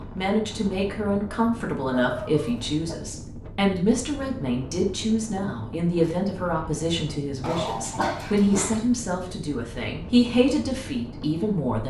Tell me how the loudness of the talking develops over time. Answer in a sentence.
The volume of the talking stays about the same.